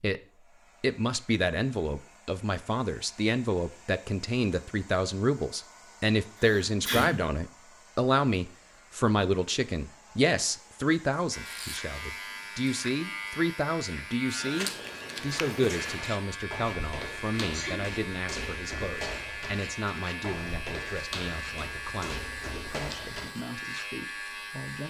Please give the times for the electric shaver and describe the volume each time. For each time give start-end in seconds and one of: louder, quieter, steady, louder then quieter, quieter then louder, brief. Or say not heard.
11.3-24.8 steady.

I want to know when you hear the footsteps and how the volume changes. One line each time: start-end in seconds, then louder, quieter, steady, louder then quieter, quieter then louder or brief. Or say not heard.
14.3-23.4 steady.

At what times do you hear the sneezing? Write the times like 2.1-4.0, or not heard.
6.4-7.2, 17.4-17.9.